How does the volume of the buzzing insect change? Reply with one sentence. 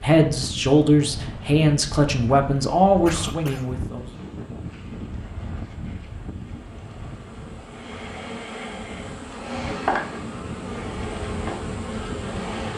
The volume of the buzzing insect goes up.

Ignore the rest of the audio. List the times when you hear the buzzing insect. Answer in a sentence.
You can hear the buzzing insect from 0.1 to 12.7 s.